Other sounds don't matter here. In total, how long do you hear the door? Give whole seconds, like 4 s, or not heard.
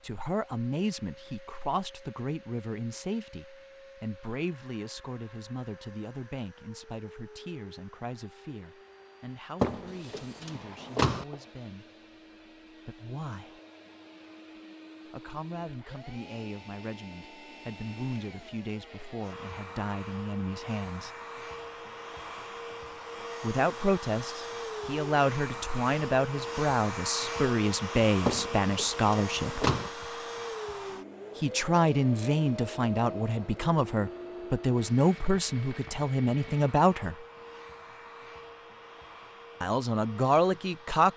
3 s.